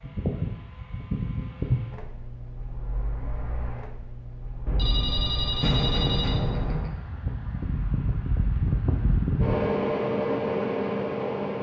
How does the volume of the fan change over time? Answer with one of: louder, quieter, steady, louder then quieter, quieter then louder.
quieter then louder.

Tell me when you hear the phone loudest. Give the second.
6 s.